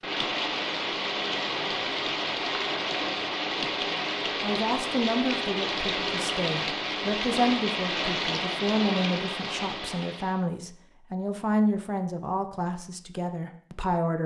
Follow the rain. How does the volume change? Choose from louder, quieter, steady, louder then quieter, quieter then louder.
steady.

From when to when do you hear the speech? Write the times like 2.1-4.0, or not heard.
3.9-14.2.